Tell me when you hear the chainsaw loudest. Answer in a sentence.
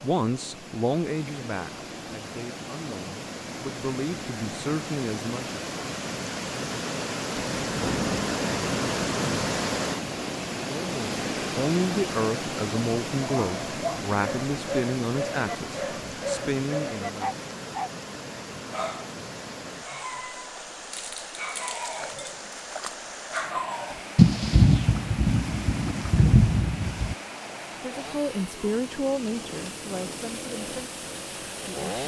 The loudest moment of the chainsaw is at 32 seconds.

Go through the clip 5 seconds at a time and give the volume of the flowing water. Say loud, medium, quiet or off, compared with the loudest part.
medium, loud, loud, medium, medium, medium, medium.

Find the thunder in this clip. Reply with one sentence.
The thunder can be heard from 7.3 to 9.8 s and from 24.1 to 27.1 s.